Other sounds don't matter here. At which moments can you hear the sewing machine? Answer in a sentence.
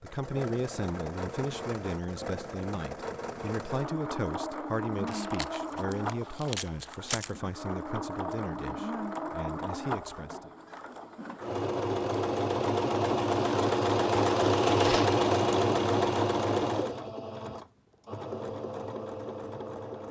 The sewing machine can be heard from 0.0 to 20.0 s.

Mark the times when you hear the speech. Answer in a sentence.
The speech can be heard from 0.0 to 10.5 s.